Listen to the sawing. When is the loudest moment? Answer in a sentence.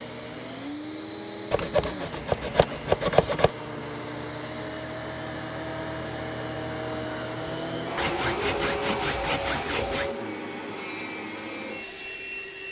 The loudest moment of the sawing is at 3 seconds.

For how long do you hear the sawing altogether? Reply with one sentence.
You can hear the sawing for 4 seconds altogether.